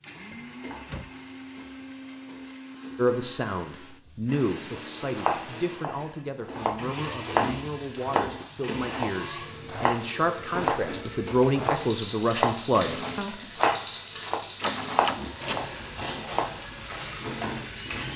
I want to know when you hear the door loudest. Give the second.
15 s.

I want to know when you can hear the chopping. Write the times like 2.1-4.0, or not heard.
5.2-16.6.